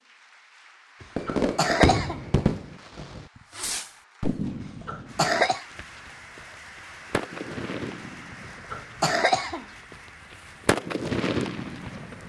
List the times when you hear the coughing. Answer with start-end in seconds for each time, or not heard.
1.0-2.2, 4.6-5.7, 8.6-9.7.